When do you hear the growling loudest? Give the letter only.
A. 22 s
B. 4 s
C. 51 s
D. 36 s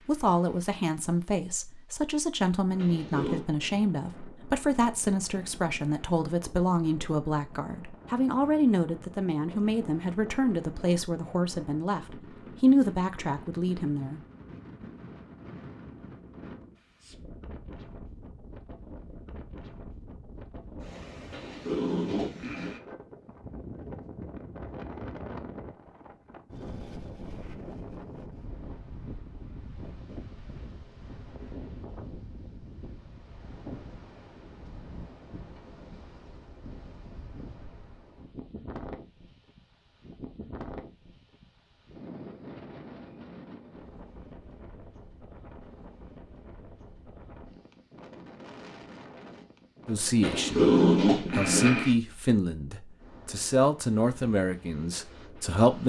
C.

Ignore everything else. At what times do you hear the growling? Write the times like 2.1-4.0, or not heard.
2.8-3.5, 21.3-22.8, 50.2-52.0.